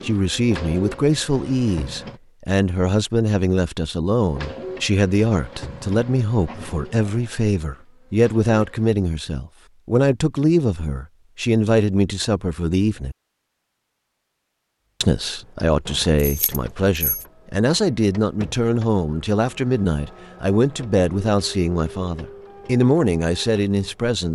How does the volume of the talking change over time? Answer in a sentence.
The loudness of the talking stays about the same.